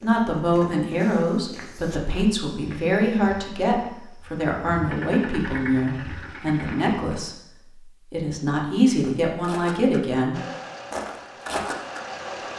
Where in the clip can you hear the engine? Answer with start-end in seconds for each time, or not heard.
4.8-7.0, 10.3-12.5.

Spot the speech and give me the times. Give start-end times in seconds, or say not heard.
0.0-10.4.